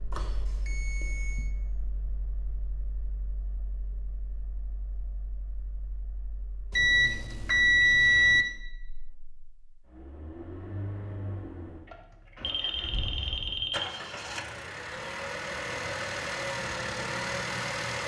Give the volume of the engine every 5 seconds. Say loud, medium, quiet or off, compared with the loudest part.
quiet, quiet, medium, loud.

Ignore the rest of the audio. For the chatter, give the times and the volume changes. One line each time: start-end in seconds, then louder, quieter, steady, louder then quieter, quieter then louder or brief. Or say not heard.
not heard.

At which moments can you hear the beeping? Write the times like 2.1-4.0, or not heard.
0.1-1.4, 6.7-8.4, 12.4-13.9.